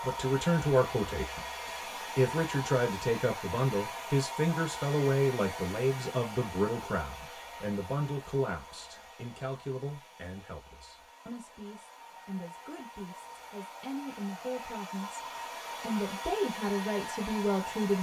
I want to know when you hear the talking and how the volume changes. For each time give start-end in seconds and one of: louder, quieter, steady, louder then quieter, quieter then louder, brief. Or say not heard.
0.0-15.2 quieter
15.8-17.9 brief.